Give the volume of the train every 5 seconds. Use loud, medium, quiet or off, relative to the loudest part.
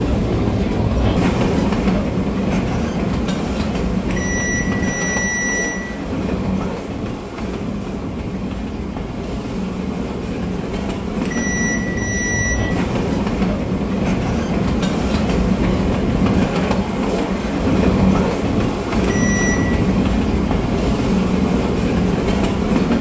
loud, medium, loud, loud, loud.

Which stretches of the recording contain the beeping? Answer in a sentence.
The beeping can be heard from 4.1 to 5.8 s, from 11.2 to 12.6 s and from 19.0 to 19.8 s.